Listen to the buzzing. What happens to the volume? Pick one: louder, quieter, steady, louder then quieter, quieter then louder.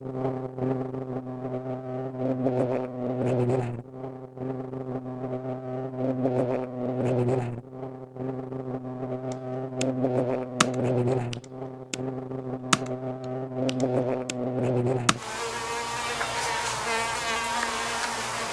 steady.